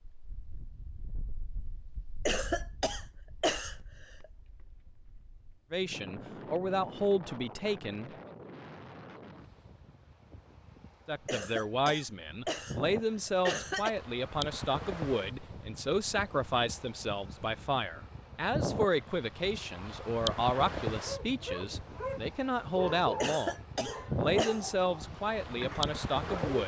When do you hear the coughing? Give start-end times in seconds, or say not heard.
2.2-4.2, 11.2-13.9, 23.2-24.6.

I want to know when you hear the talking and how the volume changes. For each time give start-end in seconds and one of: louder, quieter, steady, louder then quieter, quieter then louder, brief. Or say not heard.
5.7-8.1 brief
11.1-26.6 steady.